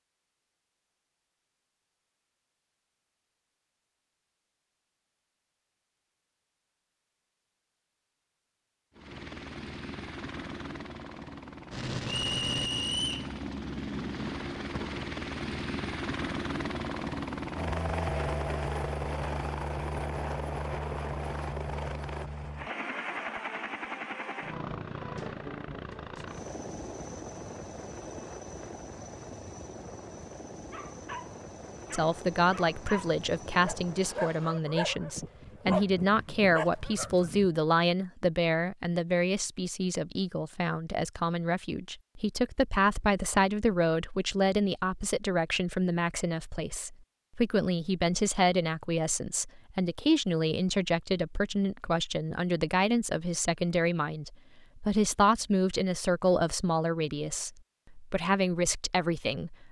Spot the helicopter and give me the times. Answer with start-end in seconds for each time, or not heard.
8.9-34.6.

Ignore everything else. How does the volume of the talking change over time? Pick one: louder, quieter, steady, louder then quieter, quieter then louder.
steady.